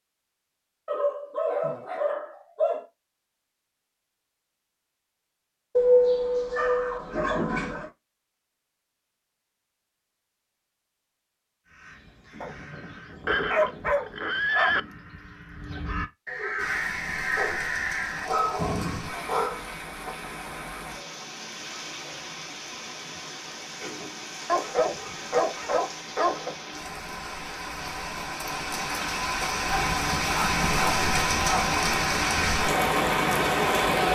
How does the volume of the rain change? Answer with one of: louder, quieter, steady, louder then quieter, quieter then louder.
louder.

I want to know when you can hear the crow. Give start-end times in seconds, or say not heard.
11.7-19.1.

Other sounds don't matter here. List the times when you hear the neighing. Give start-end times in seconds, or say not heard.
13.2-14.8.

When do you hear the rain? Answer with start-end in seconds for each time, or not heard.
16.6-34.1.